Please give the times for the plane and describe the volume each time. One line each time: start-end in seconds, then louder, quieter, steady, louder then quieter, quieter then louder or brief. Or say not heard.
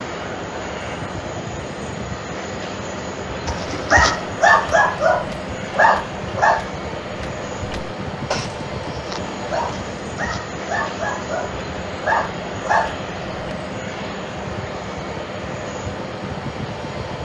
0.0-17.2 steady.